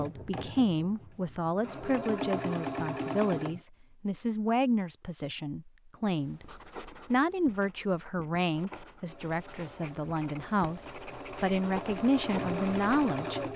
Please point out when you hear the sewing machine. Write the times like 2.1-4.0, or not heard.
0.0-3.6, 9.1-13.5.